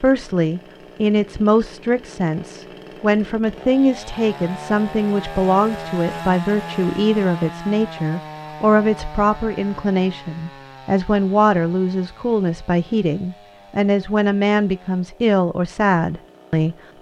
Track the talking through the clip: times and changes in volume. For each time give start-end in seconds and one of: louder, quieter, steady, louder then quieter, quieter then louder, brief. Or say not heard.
0.0-16.8 steady.